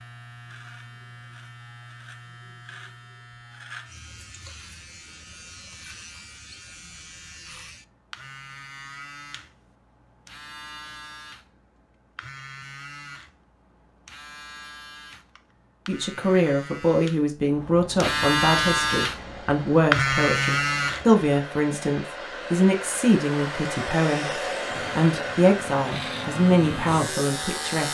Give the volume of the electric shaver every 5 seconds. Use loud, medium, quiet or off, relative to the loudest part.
quiet, quiet, quiet, loud, loud, medium.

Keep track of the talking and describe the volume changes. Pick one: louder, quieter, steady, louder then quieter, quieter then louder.
steady.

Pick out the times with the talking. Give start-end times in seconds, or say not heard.
15.8-27.8.